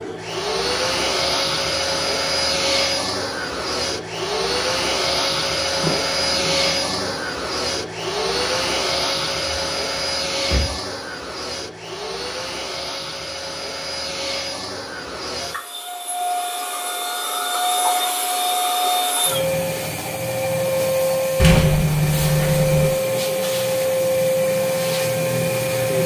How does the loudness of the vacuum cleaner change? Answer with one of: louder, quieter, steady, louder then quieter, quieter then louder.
quieter then louder.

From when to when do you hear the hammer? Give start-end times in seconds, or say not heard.
not heard.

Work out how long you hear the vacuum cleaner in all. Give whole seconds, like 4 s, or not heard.
26 s.